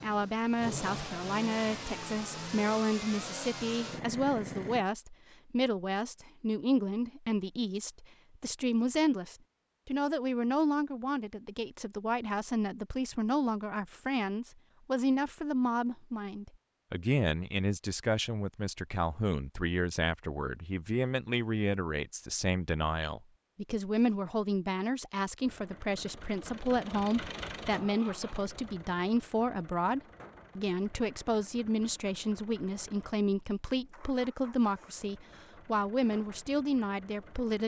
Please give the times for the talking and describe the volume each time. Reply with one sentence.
The talking can be heard from 0.0 to 37.6 s, at a steady volume.